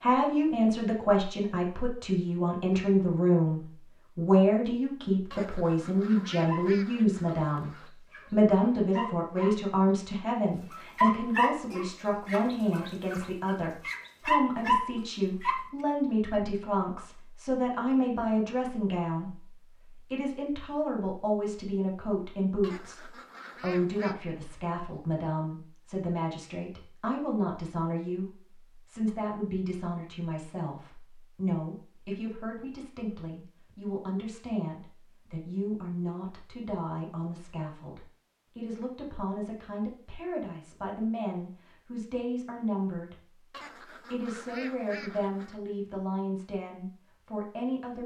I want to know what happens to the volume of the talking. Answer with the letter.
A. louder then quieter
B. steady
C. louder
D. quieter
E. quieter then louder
D.